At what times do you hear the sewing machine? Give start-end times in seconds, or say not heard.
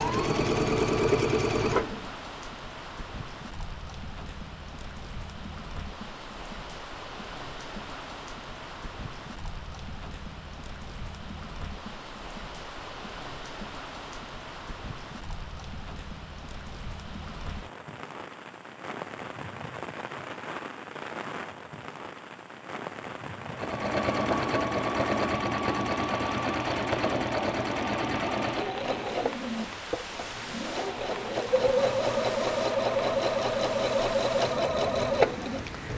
0.0-2.1, 23.5-35.9.